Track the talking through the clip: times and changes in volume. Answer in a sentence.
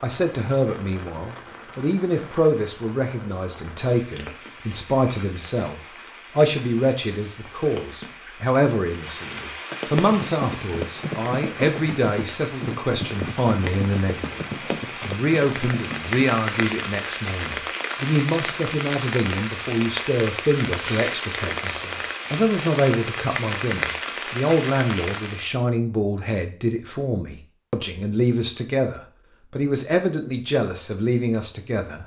You can hear the talking from 0.0 to 32.0 s, at a steady volume.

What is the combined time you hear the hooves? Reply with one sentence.
The hooves can be heard for 6 seconds in total.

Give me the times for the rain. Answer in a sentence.
The rain can be heard from 0.0 to 25.6 s.